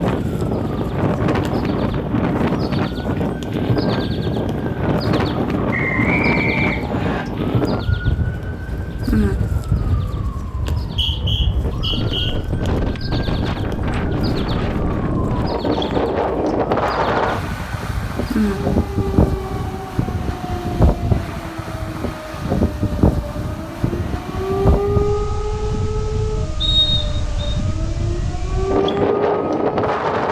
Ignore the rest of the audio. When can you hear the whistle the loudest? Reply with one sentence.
The volume of the whistle peaks at 27 seconds.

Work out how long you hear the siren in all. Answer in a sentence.
The siren can be heard for 30 seconds in total.